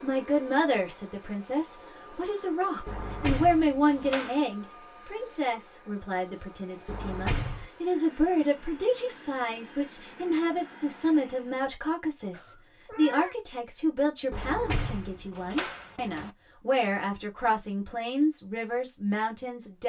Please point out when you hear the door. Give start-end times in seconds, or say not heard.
2.9-4.4, 6.8-7.7, 14.3-16.3.